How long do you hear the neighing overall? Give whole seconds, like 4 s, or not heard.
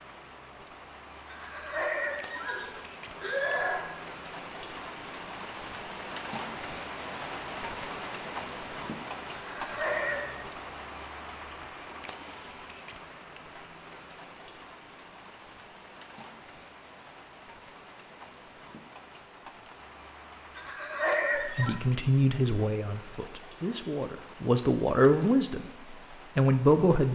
5 s.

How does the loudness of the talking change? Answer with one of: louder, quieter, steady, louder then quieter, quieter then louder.
quieter then louder.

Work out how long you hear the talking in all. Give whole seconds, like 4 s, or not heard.
6 s.